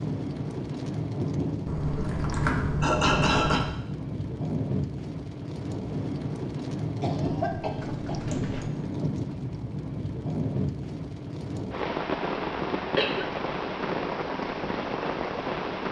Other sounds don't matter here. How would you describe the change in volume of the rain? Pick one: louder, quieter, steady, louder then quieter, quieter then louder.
steady.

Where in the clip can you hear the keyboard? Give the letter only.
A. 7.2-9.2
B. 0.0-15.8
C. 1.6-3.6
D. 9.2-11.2
C.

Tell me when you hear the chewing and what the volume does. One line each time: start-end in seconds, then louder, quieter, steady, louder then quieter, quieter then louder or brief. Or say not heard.
not heard.